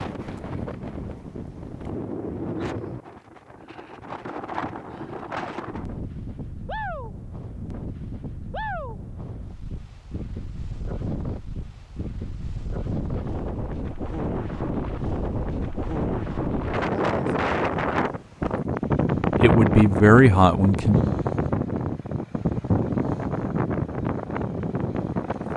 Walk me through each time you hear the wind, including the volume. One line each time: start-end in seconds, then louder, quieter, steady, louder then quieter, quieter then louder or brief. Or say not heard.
0.0-25.5 louder.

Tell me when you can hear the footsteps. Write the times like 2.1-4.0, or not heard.
not heard.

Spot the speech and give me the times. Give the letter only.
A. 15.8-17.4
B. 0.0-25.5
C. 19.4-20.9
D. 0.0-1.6
C.